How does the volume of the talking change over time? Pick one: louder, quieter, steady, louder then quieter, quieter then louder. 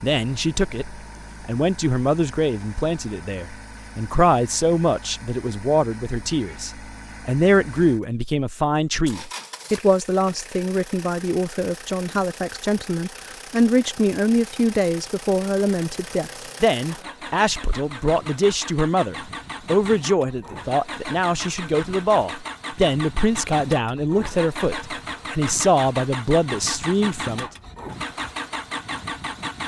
steady.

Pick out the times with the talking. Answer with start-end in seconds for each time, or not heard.
0.0-27.4.